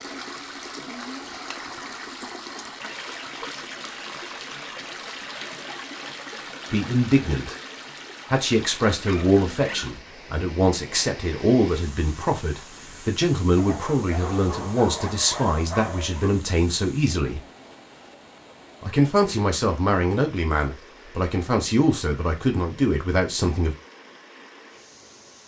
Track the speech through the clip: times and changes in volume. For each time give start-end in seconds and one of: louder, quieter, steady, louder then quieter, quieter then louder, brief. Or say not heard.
6.7-7.5 brief
8.3-17.4 steady
18.8-23.8 steady.